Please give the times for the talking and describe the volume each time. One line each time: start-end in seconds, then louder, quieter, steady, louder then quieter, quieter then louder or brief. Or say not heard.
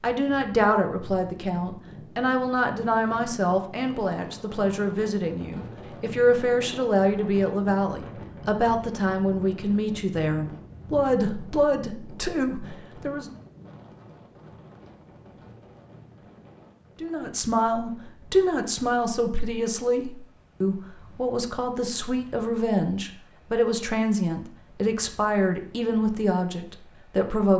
0.0-13.3 steady
17.0-27.5 steady.